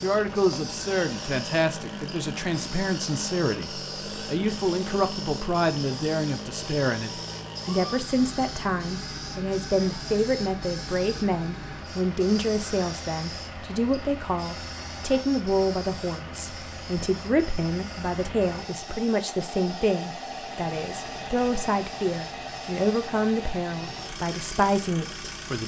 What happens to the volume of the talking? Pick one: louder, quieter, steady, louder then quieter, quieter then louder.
steady.